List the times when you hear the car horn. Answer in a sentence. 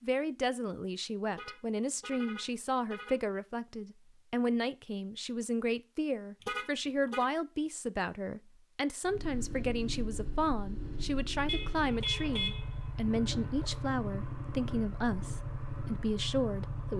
The car horn can be heard from 1.3 to 3.2 s, from 6.4 to 7.3 s and from 11.4 to 12.7 s.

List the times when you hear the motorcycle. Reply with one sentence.
You can hear the motorcycle from 9.1 to 16.9 s.